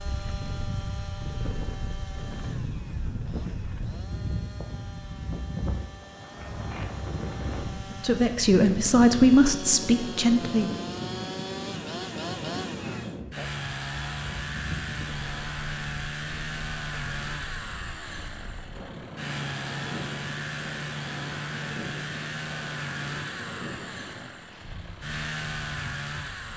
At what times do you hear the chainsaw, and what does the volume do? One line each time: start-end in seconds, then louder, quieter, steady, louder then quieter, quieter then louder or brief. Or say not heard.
0.0-26.5 louder.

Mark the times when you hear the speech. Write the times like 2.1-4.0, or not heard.
8.0-10.7.